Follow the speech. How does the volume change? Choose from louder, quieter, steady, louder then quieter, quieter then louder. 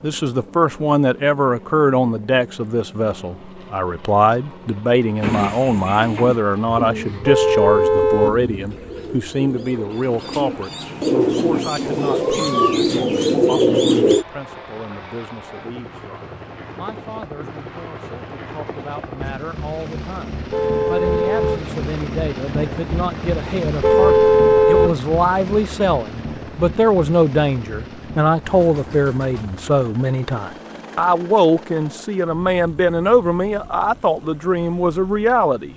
quieter then louder.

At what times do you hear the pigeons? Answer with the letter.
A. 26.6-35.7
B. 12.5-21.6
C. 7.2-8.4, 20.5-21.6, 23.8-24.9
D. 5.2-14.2
D.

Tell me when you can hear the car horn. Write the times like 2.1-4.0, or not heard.
7.2-8.4, 20.5-21.6, 23.8-24.9.